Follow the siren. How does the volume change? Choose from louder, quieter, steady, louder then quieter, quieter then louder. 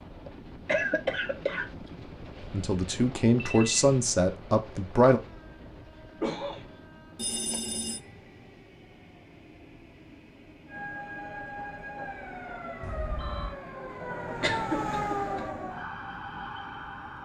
louder then quieter.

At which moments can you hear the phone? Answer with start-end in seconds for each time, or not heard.
3.4-3.9, 7.2-8.0, 12.8-13.6.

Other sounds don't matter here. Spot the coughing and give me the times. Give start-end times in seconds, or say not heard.
0.2-1.6, 6.2-6.7, 14.4-15.5.